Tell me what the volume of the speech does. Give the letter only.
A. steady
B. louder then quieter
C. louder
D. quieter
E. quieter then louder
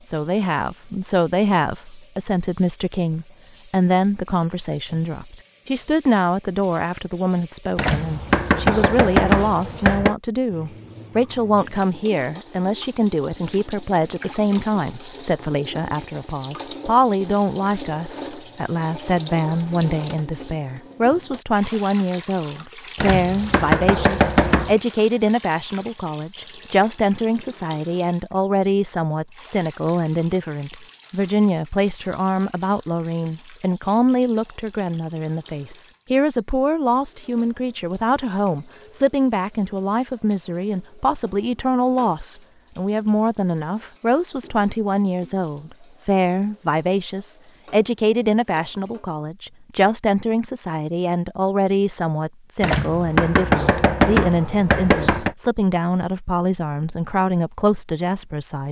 A.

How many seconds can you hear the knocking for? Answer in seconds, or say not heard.
7 s.